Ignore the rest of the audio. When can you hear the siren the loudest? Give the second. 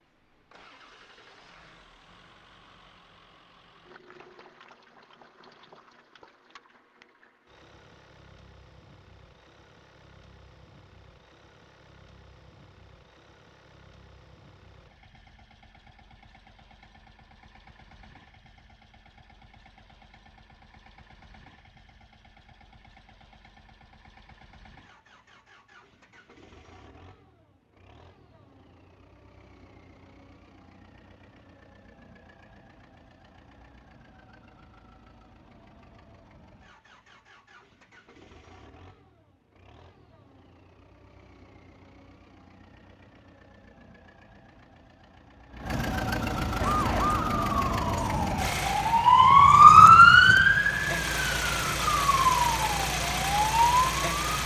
50 s.